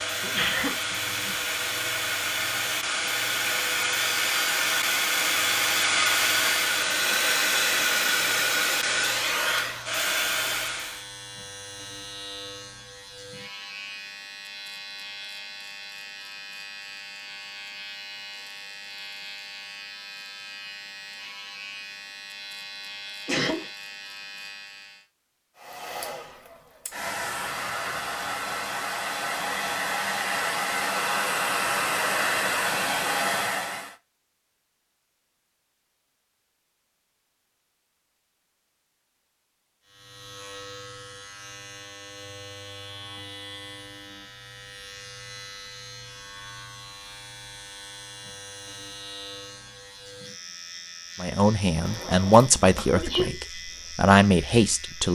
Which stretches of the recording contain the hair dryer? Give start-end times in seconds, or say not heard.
0.0-11.1, 25.6-34.0.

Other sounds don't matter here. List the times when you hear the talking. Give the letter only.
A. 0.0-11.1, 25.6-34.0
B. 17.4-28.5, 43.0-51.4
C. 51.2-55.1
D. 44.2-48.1
C.